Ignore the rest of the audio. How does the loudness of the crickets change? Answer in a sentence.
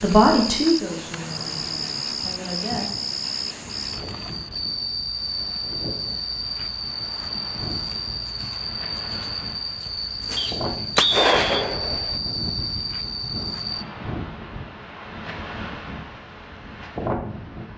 The volume of the crickets stays about the same.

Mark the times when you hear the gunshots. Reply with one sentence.
You can hear the gunshots from 10.2 to 12.2 s.